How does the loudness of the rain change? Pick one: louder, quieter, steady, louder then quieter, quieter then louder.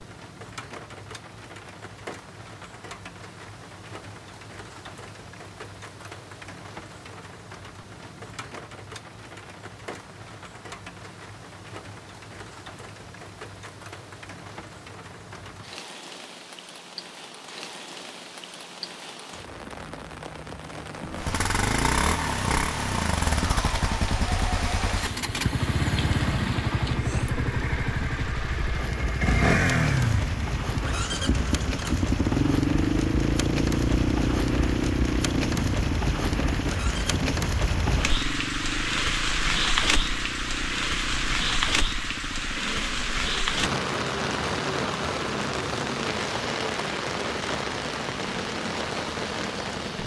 louder.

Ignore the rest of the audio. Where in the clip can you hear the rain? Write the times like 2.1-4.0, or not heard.
0.0-50.0.